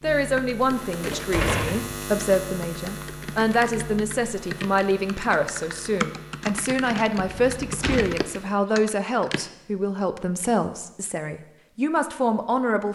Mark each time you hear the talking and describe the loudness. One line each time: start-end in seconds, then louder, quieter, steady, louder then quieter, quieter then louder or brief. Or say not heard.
0.0-12.8 steady.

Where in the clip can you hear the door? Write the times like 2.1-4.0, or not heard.
1.0-1.9, 7.3-8.0.